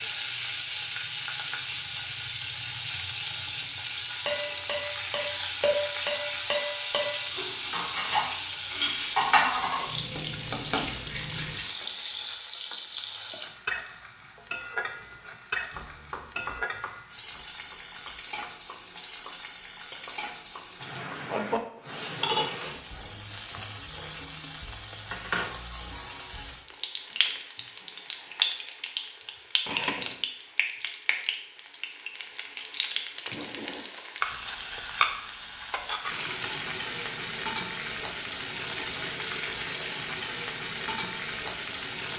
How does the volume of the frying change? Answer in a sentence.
The volume of the frying stays about the same.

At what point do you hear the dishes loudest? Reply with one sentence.
The volume of the dishes peaks at 9 seconds.